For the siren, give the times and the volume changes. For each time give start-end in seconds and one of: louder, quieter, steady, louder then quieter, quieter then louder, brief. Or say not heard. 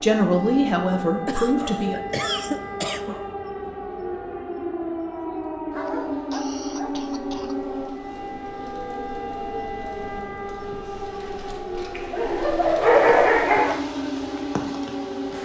0.0-15.4 steady.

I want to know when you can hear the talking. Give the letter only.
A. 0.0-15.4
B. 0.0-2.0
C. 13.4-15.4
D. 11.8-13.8
B.